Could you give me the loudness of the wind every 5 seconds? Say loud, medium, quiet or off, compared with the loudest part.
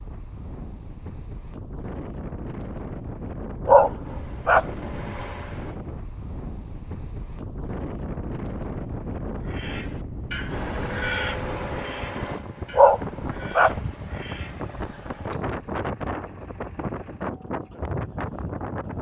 medium, loud, loud, loud.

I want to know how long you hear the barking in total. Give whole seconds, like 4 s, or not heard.
2 s.